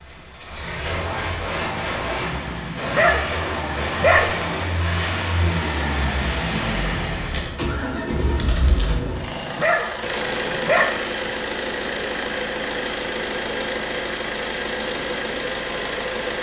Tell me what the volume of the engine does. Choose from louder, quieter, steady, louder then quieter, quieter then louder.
steady.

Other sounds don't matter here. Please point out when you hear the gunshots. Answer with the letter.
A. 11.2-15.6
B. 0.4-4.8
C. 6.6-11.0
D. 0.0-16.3
B.